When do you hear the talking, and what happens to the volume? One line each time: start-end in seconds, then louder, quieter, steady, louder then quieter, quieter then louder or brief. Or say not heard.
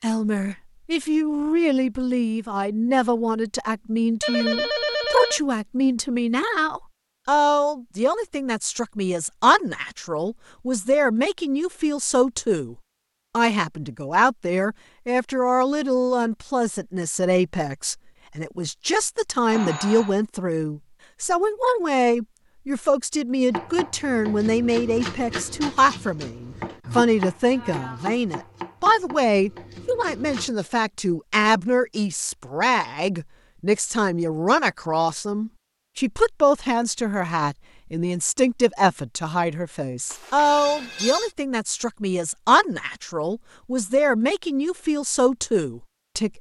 0.0-46.3 steady.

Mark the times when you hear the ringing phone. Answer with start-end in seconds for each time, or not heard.
4.2-5.4, 19.5-20.1, 40.1-41.3.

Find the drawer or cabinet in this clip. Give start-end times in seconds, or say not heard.
not heard.